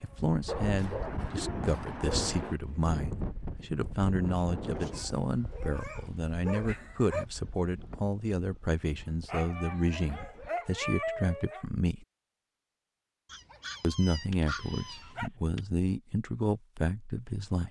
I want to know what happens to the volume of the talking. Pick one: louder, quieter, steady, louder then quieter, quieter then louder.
steady.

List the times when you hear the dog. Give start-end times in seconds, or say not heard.
0.5-2.5, 4.8-7.2, 9.2-11.7, 13.3-15.3.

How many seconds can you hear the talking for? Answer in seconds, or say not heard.
16 s.